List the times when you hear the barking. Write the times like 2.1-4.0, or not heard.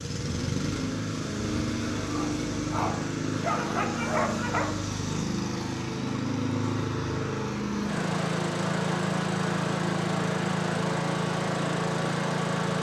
1.9-4.8.